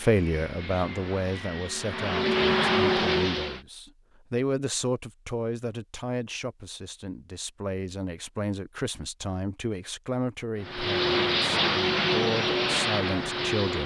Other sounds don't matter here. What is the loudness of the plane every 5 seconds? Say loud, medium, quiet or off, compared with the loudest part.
loud, off, loud.